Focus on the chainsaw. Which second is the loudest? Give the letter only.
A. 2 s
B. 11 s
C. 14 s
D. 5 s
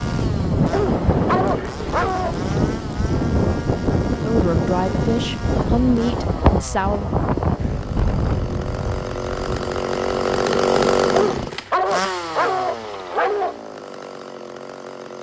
B.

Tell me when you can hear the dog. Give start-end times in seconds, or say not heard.
0.7-2.6, 11.2-13.6.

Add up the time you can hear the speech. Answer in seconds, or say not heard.
3 s.